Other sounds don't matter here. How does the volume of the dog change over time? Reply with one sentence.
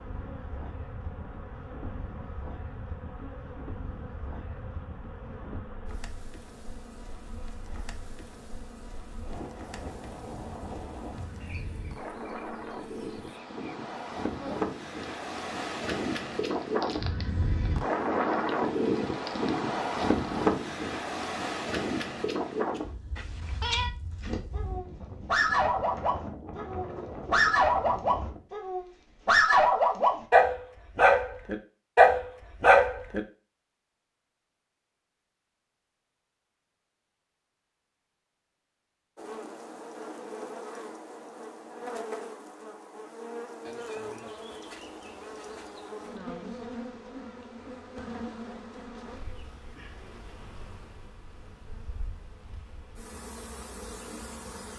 The loudness of the dog goes up.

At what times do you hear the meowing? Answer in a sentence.
You can hear the meowing from 23.1 to 23.9 s.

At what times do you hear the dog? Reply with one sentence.
The dog can be heard from 24.2 to 33.2 s.